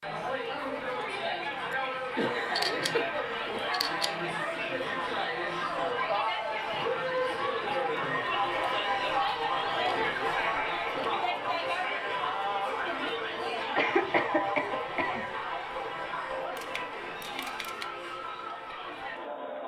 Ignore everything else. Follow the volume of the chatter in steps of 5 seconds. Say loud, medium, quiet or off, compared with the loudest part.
loud, loud, loud, medium.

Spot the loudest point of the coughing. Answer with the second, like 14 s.
14 s.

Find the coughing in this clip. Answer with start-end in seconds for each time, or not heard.
1.7-3.6, 13.8-15.2.